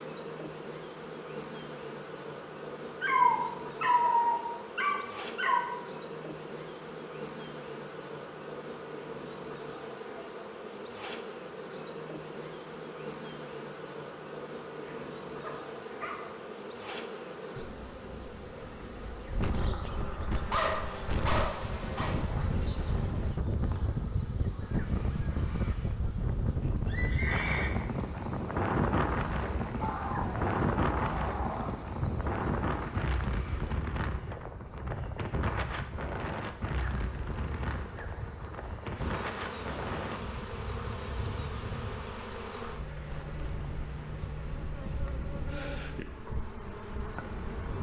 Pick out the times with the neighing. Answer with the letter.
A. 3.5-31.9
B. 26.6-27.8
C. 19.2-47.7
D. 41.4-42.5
B.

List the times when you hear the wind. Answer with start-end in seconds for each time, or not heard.
19.2-47.7.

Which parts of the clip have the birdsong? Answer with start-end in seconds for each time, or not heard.
not heard.